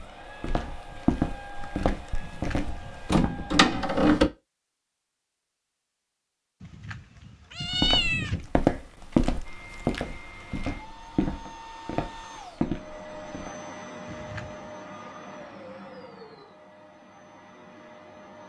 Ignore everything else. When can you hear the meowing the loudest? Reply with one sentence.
The loudest moment of the meowing is at 8 seconds.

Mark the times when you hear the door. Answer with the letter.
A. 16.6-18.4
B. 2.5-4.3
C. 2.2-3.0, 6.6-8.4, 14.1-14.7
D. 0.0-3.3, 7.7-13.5
B.